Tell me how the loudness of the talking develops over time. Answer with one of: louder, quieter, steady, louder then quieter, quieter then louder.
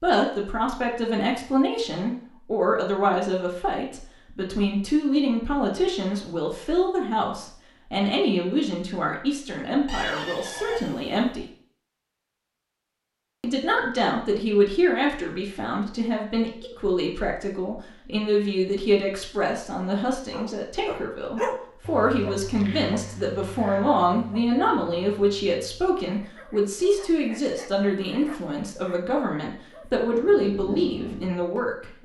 steady.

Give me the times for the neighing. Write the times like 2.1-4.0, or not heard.
9.8-11.2.